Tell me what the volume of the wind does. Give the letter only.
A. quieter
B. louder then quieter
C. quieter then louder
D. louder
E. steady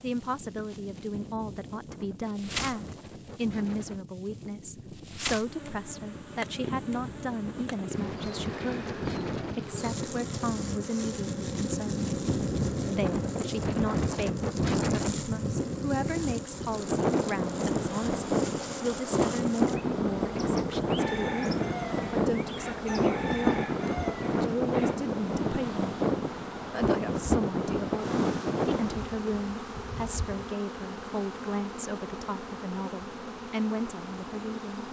D.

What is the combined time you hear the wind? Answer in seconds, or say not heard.
29 s.